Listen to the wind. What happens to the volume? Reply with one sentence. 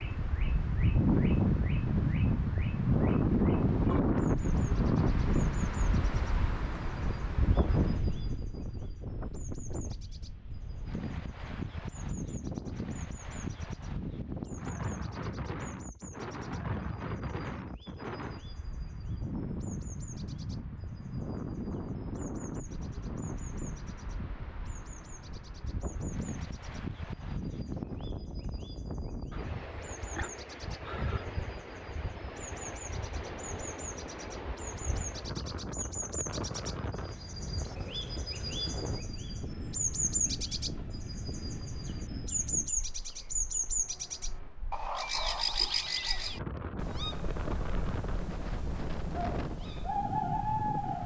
The loudness of the wind goes down.